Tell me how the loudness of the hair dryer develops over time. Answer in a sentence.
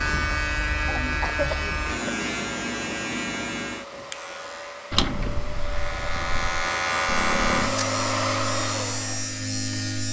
The volume of the hair dryer goes up.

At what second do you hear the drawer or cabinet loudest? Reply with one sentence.
The volume of the drawer or cabinet peaks at 5 seconds.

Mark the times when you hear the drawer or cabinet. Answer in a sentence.
The drawer or cabinet can be heard from 4.9 to 6.7 s.